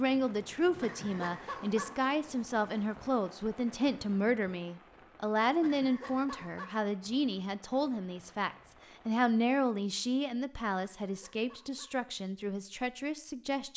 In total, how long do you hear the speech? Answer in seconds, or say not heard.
14 s.